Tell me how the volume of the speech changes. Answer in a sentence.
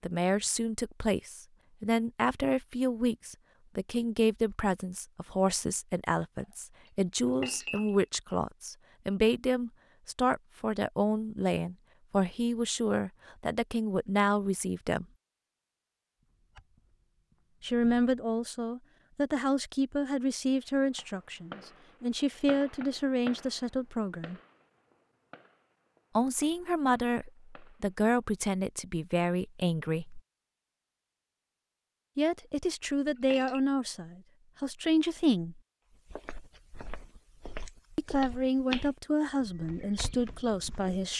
The loudness of the speech stays about the same.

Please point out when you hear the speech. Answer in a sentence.
You can hear the speech from 0.0 to 15.1 s, from 17.6 to 24.4 s, from 26.1 to 30.2 s, from 32.1 to 35.6 s and from 38.0 to 41.1 s.